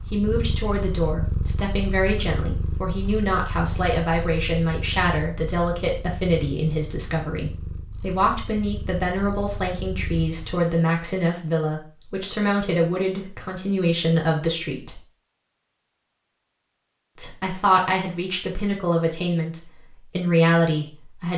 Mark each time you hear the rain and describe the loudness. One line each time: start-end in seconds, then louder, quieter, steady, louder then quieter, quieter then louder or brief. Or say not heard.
not heard.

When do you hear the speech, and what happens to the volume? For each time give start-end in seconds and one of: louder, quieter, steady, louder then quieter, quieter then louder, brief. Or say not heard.
0.1-15.0 steady
17.1-21.3 quieter then louder.